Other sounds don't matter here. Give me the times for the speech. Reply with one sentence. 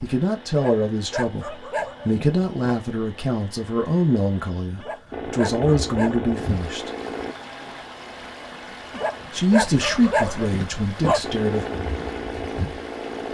The speech can be heard from 0.0 to 6.9 s and from 9.3 to 11.7 s.